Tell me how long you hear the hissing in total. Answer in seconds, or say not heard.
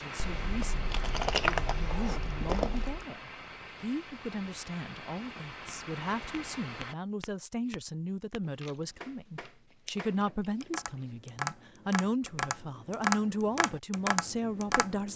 7 s.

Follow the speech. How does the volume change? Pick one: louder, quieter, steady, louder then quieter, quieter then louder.
louder.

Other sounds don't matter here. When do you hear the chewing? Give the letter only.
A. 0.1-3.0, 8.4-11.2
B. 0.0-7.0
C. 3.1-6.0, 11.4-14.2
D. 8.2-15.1
A.